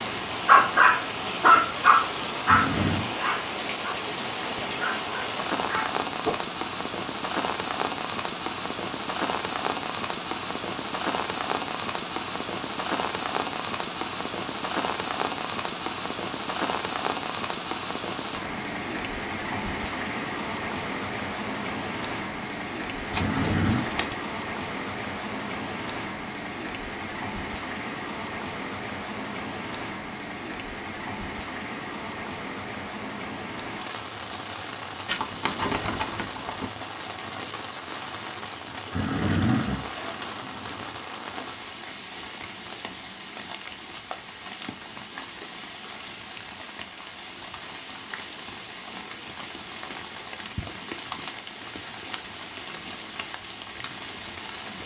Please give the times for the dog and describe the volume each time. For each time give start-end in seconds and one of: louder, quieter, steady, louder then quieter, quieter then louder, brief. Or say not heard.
0.2-6.3 quieter.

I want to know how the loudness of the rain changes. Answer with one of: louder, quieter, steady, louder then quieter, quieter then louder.
quieter.